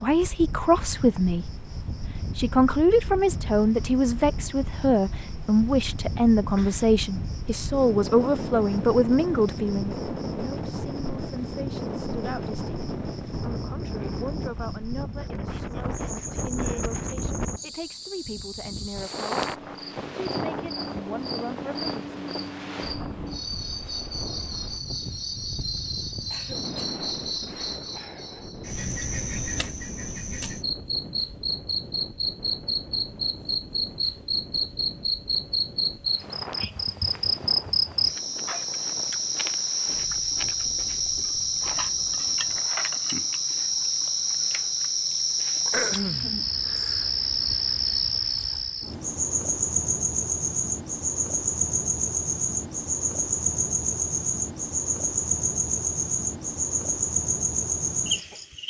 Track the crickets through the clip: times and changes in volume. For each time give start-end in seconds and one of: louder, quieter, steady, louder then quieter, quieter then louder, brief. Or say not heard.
0.1-58.6 louder.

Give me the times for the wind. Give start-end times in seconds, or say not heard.
0.0-42.8.